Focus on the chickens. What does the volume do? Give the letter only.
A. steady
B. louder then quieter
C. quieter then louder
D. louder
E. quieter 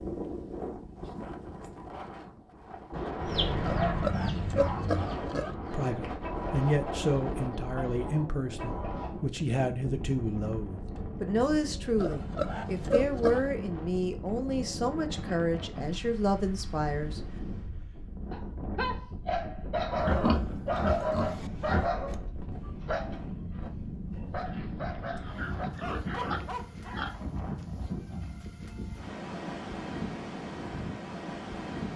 E.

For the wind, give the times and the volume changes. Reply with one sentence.
You can hear the wind from 0.0 to 31.9 s, at a steady volume.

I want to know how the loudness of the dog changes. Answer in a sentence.
The volume of the dog goes down.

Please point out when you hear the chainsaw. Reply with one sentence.
You can't hear the chainsaw here.